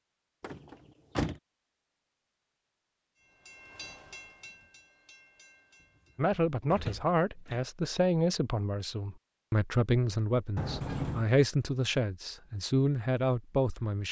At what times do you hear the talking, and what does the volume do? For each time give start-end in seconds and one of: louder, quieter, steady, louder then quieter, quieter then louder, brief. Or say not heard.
6.2-14.0 steady.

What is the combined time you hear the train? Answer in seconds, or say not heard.
3 s.